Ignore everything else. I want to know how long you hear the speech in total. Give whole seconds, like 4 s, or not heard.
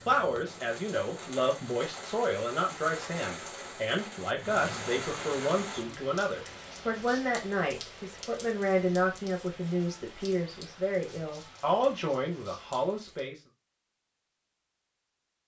13 s.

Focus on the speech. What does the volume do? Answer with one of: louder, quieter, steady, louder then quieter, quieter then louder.
steady.